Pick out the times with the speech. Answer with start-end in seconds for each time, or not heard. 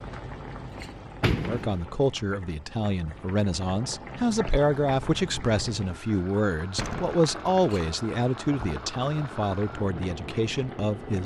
1.4-11.2.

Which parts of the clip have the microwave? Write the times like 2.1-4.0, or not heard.
not heard.